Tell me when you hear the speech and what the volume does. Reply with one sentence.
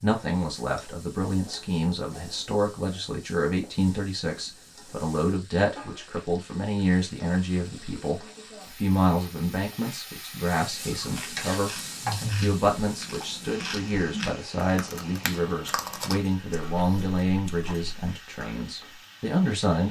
The speech can be heard from 0.0 to 19.8 s, at a steady volume.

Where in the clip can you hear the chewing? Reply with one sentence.
You can hear the chewing from 10.8 to 17.9 s.